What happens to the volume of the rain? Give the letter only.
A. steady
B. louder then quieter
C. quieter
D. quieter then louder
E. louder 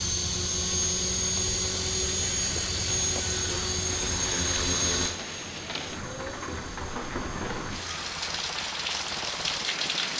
E.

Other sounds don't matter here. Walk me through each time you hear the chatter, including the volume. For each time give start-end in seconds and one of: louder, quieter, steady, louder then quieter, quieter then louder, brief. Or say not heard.
not heard.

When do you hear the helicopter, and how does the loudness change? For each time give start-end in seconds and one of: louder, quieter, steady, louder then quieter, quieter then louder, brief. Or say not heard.
0.0-10.1 quieter.